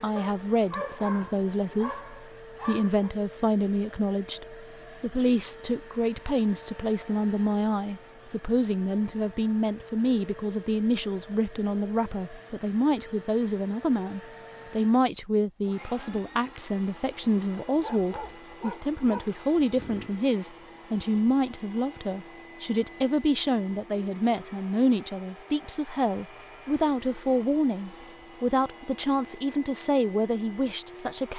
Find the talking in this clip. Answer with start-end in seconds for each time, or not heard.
0.0-31.3.